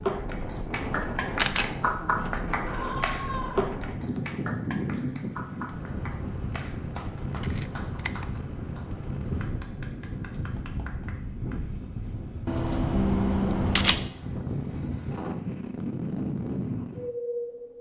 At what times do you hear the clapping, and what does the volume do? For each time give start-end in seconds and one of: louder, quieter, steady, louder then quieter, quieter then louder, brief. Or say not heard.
0.0-11.6 quieter.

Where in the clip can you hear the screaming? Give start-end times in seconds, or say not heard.
2.6-3.7.